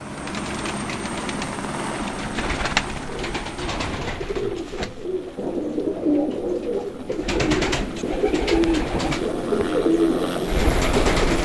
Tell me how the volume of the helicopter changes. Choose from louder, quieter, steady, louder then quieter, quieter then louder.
quieter then louder.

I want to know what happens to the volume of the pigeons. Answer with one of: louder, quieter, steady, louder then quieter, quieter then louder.
louder.